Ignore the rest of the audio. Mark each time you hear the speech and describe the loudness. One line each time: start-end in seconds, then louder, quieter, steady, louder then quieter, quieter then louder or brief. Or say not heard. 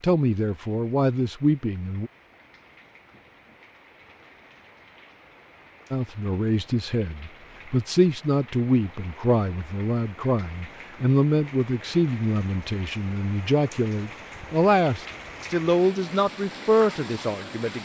0.0-2.1 brief
5.9-17.8 steady.